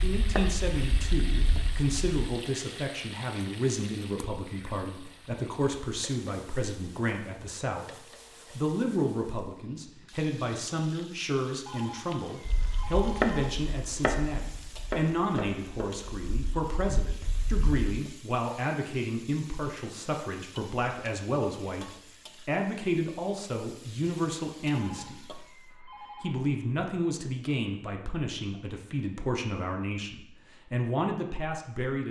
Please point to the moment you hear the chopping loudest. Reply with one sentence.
The volume of the chopping peaks at 13 seconds.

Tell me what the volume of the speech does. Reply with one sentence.
The volume of the speech stays about the same.